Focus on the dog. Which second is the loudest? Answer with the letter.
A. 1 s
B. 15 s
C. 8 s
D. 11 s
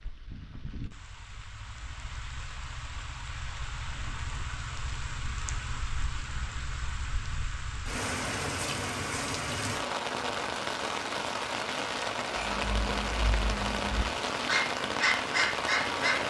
B.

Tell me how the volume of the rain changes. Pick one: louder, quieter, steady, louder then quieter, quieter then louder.
louder.